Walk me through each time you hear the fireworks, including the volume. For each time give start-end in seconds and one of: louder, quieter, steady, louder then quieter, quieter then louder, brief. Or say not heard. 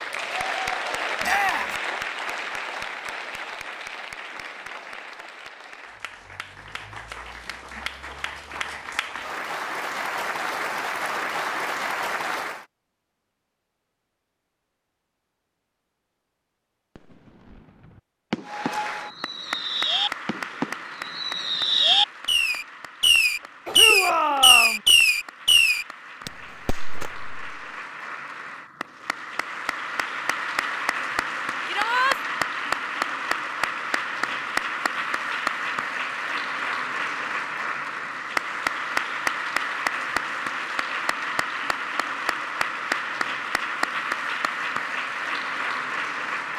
16.9-27.6 louder then quieter.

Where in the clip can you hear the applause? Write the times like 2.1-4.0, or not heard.
0.0-12.7, 18.4-46.5.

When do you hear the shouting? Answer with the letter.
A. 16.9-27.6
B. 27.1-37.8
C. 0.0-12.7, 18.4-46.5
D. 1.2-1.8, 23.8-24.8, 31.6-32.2
D.